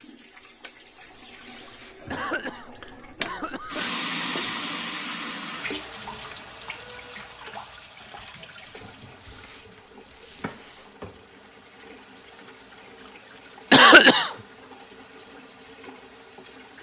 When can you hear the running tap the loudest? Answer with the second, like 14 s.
4 s.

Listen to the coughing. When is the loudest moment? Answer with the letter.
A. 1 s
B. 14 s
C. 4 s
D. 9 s
B.